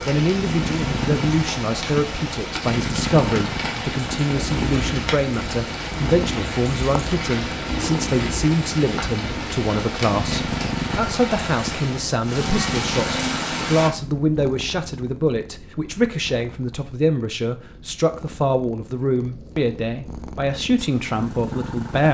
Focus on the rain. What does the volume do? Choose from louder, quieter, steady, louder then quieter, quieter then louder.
steady.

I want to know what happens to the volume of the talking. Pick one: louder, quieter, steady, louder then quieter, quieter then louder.
steady.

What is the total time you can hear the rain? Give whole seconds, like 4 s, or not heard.
14 s.